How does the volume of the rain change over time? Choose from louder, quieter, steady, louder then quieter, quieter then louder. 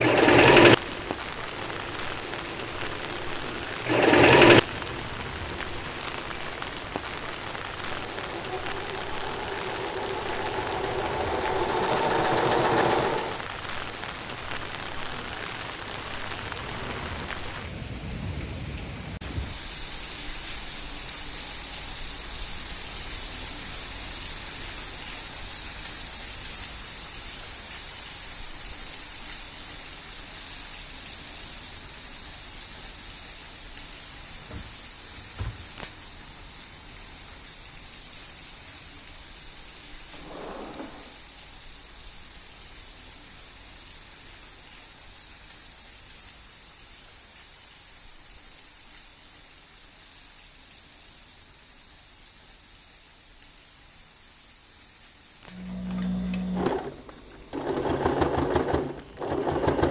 quieter.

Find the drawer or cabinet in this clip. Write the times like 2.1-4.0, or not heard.
16.6-17.3, 34.4-35.7, 40.1-41.2.